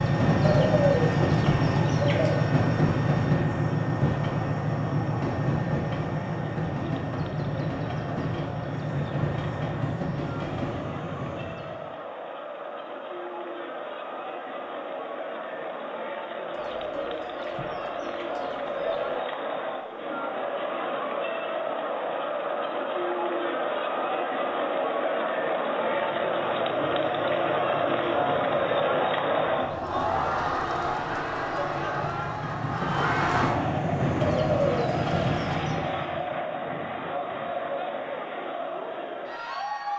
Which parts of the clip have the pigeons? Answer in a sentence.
You can hear the pigeons from 0.4 to 2.4 s, from 16.5 to 19.2 s and from 34.2 to 35.9 s.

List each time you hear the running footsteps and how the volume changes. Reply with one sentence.
The running footsteps can't be heard in this clip.